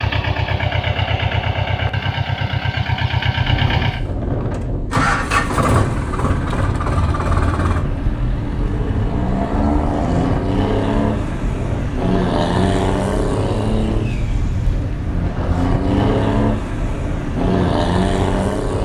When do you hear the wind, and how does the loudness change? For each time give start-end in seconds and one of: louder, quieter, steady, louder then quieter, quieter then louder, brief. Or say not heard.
3.4-18.8 steady.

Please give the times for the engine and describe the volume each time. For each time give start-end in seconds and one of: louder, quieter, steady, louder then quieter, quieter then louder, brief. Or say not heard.
0.0-18.8 steady.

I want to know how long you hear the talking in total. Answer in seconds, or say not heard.
not heard.